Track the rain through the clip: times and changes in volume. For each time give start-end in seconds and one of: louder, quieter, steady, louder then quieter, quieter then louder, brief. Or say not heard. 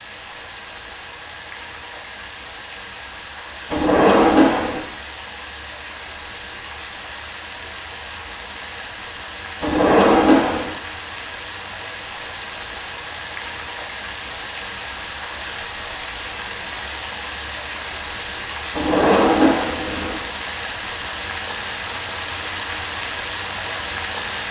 0.0-24.4 louder.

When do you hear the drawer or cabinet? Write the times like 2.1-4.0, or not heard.
3.7-4.8, 9.6-10.8, 18.7-20.2.